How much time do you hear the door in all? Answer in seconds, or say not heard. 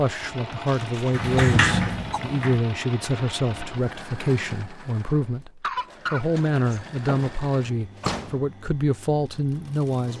4 s.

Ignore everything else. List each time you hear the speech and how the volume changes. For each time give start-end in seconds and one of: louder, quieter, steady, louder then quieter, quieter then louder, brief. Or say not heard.
0.0-10.1 steady.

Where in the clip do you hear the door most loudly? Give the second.
2 s.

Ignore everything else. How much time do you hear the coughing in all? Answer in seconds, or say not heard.
2 s.